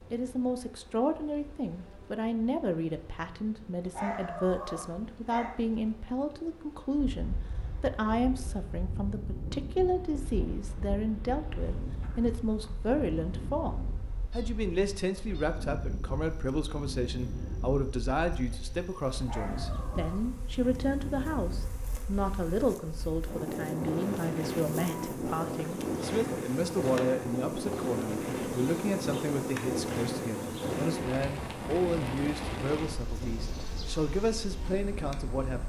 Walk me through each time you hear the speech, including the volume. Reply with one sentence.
You can hear the speech from 0.1 to 35.6 s, at a steady volume.